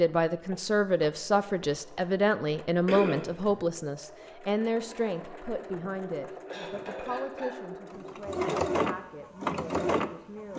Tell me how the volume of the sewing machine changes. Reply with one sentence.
The loudness of the sewing machine goes up.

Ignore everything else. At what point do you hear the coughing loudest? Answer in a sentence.
The loudest moment of the coughing is at 3 seconds.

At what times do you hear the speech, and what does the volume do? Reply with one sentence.
You can hear the speech from 0.0 to 10.5 s, getting quieter.